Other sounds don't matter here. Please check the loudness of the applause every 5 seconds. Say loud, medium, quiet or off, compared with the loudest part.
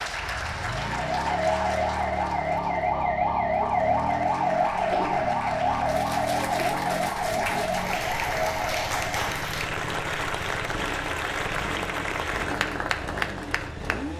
medium, loud, loud.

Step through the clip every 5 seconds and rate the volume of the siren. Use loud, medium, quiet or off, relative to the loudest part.
loud, loud, off.